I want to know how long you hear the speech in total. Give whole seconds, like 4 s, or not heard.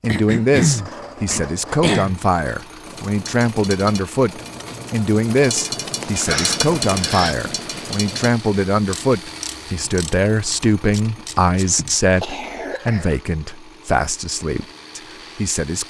16 s.